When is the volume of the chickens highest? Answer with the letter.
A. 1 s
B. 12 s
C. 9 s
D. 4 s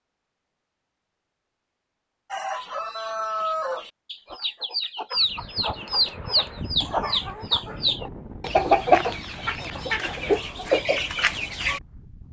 C.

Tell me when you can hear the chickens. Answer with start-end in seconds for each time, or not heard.
2.3-11.8.